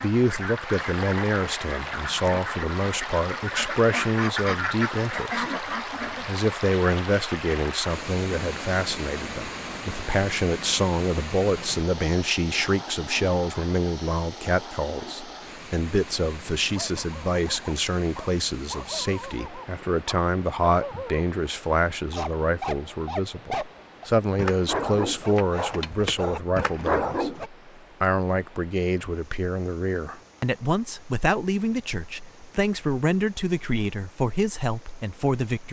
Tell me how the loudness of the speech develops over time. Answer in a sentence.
The volume of the speech stays about the same.